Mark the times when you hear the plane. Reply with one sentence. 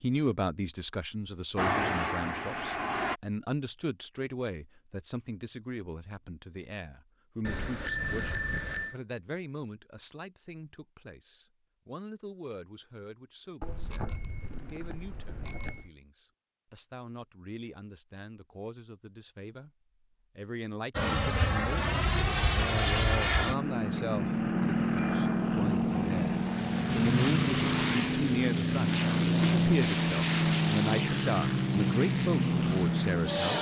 The plane can be heard from 1.6 to 3.2 s and from 20.9 to 33.5 s.